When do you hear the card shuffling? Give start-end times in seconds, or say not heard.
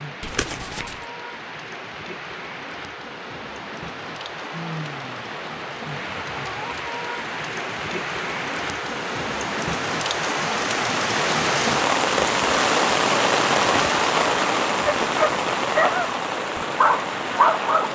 0.2-1.1.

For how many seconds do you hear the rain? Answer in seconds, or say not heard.
18 s.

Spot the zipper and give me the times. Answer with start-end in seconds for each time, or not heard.
not heard.